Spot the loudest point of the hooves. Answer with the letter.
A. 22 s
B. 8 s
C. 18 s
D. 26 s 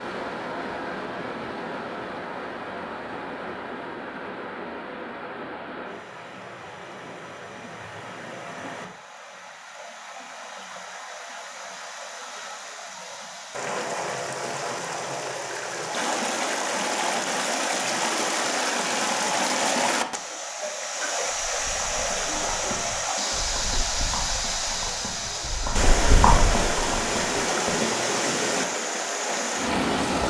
D.